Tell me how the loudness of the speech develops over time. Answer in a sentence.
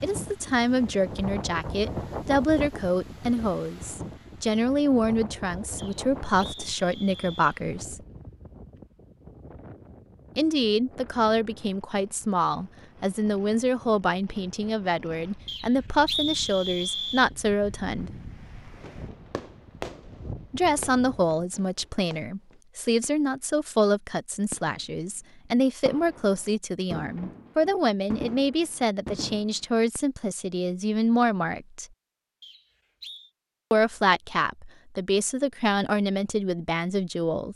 The loudness of the speech stays about the same.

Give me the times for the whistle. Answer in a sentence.
The whistle can be heard from 5.8 to 7.6 s, from 15.4 to 17.3 s and from 32.4 to 33.3 s.